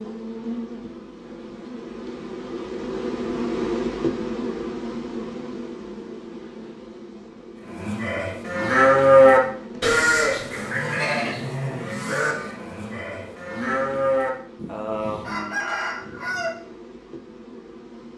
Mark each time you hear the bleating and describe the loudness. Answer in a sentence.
The bleating can be heard from 7.7 to 15.4 s, getting quieter then louder.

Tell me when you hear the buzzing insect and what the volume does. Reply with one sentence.
You can hear the buzzing insect from 0.0 to 18.1 s, getting quieter.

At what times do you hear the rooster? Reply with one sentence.
The rooster can be heard from 14.7 to 16.6 s.